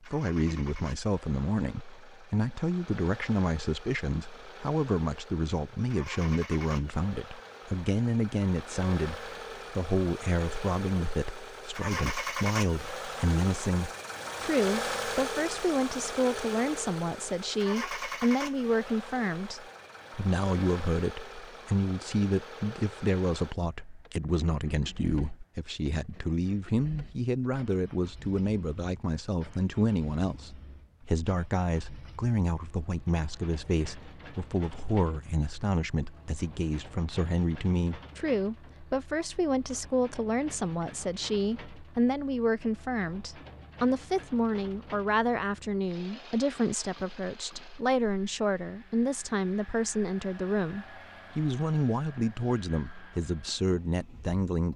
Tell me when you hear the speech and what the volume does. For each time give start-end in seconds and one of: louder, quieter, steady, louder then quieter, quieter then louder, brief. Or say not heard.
0.0-54.7 steady.